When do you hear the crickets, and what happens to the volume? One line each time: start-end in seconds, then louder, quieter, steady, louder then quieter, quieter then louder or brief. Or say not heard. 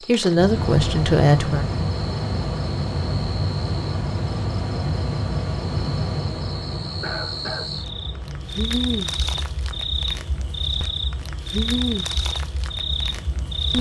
0.0-13.7 louder.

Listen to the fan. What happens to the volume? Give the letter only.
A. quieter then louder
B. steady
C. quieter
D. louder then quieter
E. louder
C.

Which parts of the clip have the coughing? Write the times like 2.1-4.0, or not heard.
7.0-7.7.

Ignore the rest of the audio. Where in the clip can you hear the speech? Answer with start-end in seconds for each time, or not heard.
0.1-1.6.